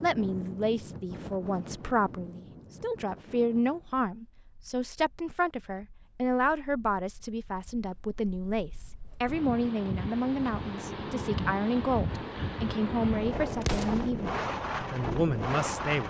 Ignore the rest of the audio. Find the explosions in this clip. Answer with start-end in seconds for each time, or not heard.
13.6-14.1.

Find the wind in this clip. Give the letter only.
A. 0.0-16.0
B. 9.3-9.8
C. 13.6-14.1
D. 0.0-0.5
A.